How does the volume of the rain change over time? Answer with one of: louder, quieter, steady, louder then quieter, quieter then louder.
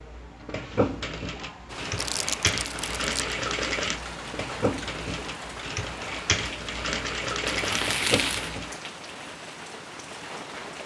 steady.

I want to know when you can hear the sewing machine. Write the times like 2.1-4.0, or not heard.
0.0-8.8.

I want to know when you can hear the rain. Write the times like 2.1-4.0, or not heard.
1.6-10.8.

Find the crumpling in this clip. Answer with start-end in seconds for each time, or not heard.
1.9-3.4, 7.5-8.6.